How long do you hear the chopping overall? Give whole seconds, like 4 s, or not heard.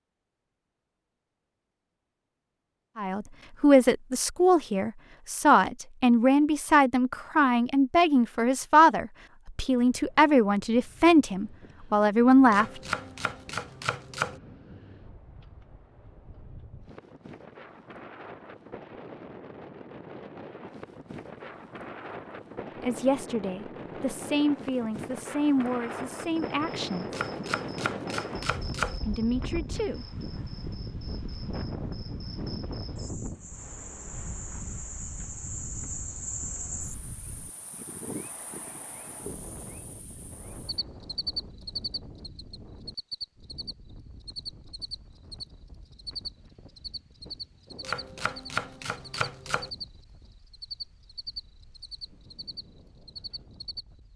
6 s.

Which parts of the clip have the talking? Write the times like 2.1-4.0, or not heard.
3.0-12.8, 22.8-27.1, 29.1-30.1.